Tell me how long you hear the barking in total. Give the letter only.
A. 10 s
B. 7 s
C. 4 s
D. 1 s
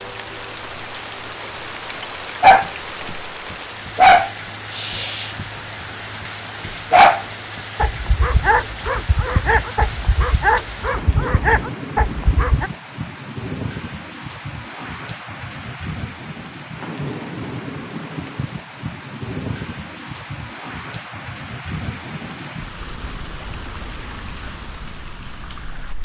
A.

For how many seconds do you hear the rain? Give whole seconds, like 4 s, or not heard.
26 s.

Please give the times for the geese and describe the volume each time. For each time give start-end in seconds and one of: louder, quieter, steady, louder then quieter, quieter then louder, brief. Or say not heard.
not heard.